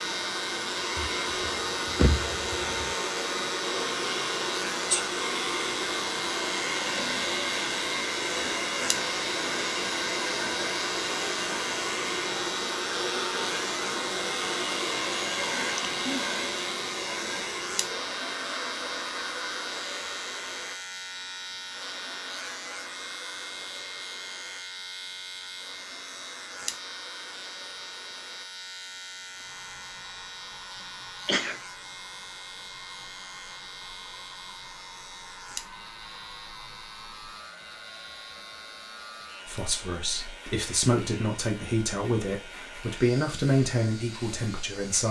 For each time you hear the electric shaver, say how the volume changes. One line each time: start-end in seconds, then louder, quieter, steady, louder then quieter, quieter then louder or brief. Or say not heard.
0.0-45.0 quieter.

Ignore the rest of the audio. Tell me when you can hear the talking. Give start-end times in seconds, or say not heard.
39.5-45.0.